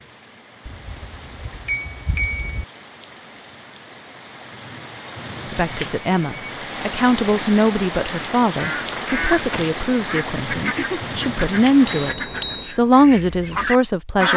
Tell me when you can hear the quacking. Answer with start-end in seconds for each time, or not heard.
8.4-14.3.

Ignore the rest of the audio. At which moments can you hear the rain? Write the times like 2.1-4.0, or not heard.
0.0-12.2.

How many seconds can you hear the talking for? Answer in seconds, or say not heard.
9 s.